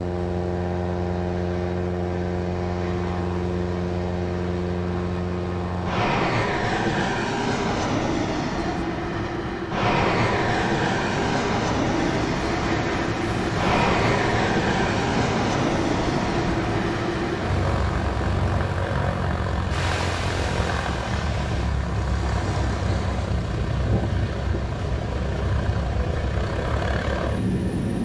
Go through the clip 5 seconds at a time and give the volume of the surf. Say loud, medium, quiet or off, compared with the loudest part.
medium, medium, loud, loud, medium, medium.